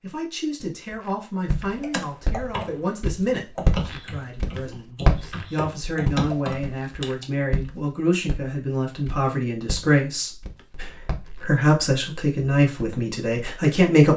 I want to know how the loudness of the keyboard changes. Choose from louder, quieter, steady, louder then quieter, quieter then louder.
quieter then louder.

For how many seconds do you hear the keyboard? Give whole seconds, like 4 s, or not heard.
6 s.